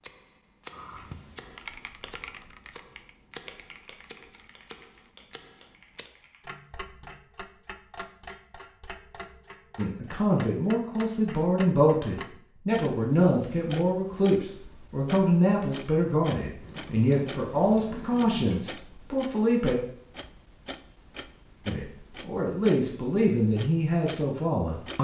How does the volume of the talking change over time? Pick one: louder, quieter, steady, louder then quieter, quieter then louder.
steady.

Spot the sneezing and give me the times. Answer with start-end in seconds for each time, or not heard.
not heard.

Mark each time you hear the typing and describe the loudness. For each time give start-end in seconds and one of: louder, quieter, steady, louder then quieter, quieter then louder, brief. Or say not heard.
0.9-6.5 quieter.